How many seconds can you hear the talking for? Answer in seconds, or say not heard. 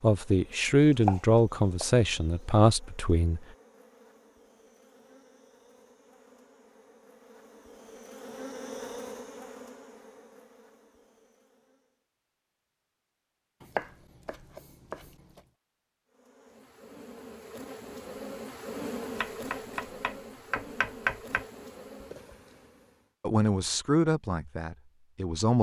6 s.